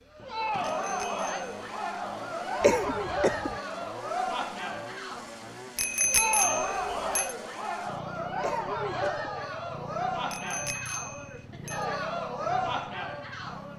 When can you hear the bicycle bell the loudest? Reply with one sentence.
The loudest moment of the bicycle bell is at 6 seconds.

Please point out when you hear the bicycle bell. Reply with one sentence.
The bicycle bell can be heard from 0.6 to 1.5 s, from 5.8 to 7.3 s and from 10.3 to 11.8 s.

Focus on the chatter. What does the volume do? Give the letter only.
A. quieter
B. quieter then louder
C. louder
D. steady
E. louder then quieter
D.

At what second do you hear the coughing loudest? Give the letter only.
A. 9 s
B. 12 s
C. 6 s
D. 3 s
D.